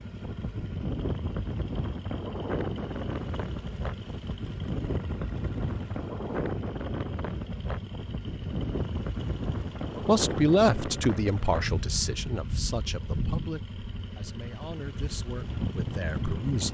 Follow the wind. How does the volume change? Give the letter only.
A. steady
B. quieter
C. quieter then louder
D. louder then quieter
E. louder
A.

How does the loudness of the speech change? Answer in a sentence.
The volume of the speech goes down.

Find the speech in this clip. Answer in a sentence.
You can hear the speech from 10.1 to 16.7 s.